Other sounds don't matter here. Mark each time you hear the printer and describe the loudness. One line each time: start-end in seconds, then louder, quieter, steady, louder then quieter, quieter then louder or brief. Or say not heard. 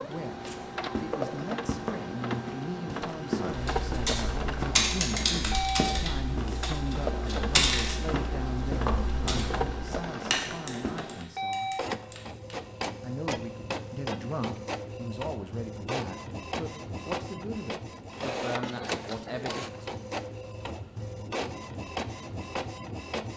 0.0-23.3 steady.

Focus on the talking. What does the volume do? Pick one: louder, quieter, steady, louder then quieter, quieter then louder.
steady.